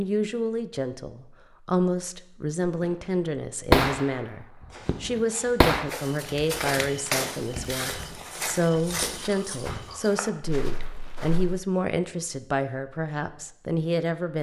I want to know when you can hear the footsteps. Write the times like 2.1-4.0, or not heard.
4.7-11.6.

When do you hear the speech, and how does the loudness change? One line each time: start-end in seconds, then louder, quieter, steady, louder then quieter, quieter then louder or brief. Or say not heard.
0.0-14.3 steady.